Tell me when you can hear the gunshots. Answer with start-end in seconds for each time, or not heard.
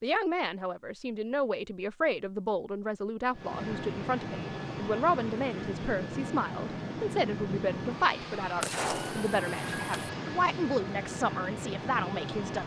8.6-10.1.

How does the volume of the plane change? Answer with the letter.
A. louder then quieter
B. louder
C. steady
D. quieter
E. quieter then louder
C.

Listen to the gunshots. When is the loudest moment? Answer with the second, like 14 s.
9 s.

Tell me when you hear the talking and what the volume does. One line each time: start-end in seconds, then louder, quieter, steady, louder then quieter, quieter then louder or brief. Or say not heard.
0.0-12.6 steady.